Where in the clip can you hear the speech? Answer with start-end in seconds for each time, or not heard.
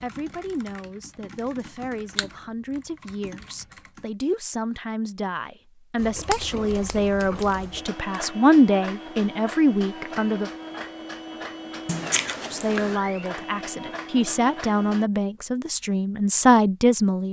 0.0-10.5, 12.5-17.2.